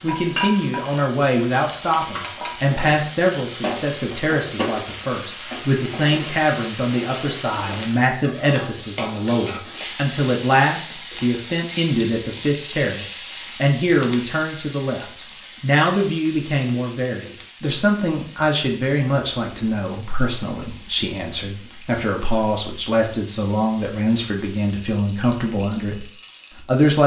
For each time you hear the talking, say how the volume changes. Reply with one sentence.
The talking can be heard from 0.0 to 27.0 s, at a steady volume.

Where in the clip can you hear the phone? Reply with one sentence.
The phone can't be heard in this clip.